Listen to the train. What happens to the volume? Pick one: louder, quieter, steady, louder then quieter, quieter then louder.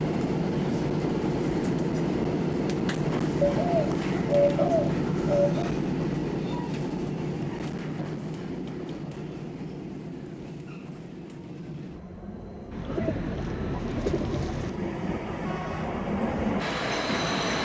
quieter then louder.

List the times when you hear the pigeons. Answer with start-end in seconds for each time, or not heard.
3.4-5.7, 12.7-14.7.